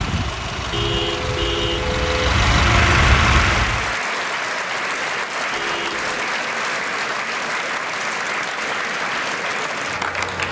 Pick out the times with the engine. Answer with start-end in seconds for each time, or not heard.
0.0-4.0.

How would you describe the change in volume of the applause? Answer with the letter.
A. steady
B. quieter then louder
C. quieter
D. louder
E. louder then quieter
A.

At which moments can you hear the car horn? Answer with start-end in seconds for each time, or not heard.
0.7-2.5, 5.5-6.3.